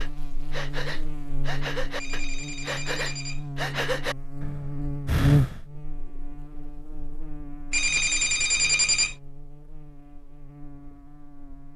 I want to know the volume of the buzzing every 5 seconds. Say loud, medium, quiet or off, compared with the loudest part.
medium, loud, quiet.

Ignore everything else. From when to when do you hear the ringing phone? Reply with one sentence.
The ringing phone can be heard from 1.9 to 3.5 s and from 7.7 to 9.2 s.